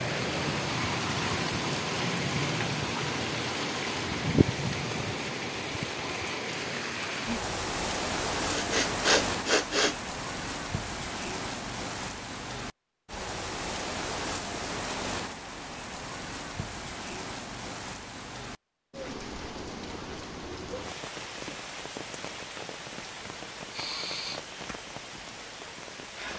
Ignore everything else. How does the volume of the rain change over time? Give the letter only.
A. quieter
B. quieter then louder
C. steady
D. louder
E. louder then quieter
A.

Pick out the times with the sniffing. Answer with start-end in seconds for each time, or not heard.
8.5-9.9, 23.7-24.4.